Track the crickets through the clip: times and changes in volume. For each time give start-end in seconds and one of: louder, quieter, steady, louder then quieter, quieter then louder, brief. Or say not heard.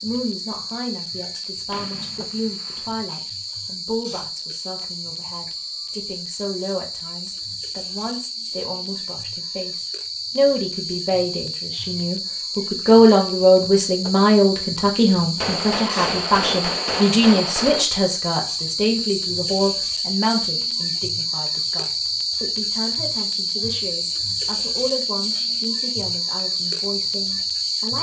0.0-27.9 louder.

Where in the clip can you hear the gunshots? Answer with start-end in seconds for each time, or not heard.
1.7-2.9, 15.3-17.9.